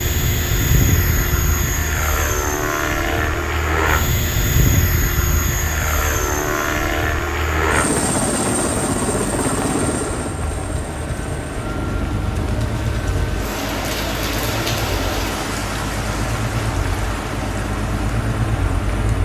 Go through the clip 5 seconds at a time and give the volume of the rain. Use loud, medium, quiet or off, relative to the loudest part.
medium, medium, loud, loud.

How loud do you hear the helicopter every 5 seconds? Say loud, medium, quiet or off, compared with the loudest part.
loud, loud, medium, medium.